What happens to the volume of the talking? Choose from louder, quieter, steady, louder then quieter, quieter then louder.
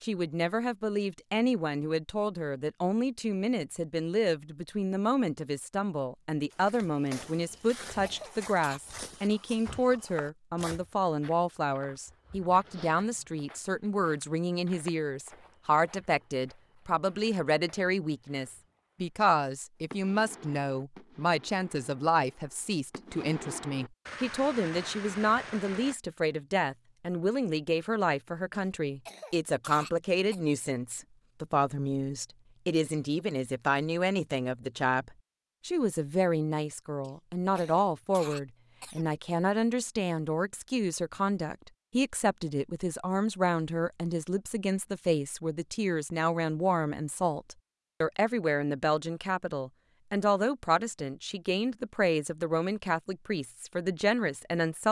steady.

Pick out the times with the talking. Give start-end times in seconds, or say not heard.
0.0-54.8.